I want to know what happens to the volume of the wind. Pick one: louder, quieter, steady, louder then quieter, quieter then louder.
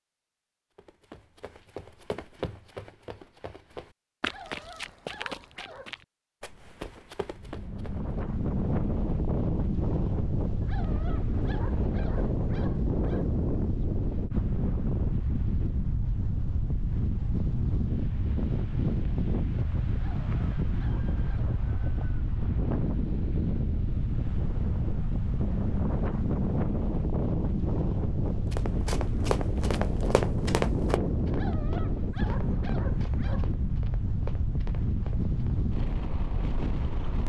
steady.